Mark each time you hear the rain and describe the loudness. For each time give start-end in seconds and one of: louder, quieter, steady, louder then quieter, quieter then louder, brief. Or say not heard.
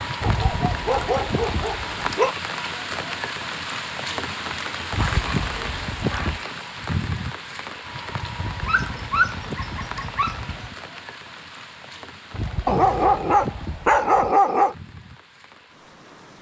0.0-16.3 quieter.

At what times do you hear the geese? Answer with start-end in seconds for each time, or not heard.
0.2-2.1, 4.9-6.5, 8.3-10.4, 12.3-14.3.